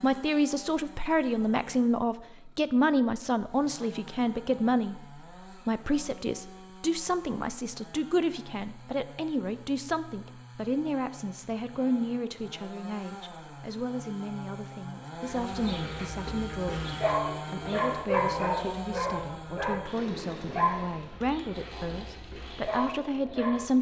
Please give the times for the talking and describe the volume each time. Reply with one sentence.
You can hear the talking from 0.0 to 23.7 s, getting quieter.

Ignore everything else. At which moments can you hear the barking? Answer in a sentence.
The barking can be heard from 15.2 to 23.7 s.